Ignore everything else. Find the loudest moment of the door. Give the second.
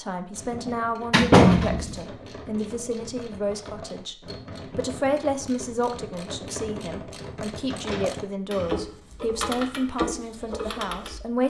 1 s.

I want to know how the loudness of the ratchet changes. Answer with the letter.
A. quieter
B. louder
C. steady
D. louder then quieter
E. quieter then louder
B.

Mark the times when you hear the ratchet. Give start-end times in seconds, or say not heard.
0.3-11.2.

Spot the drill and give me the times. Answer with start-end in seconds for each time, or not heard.
not heard.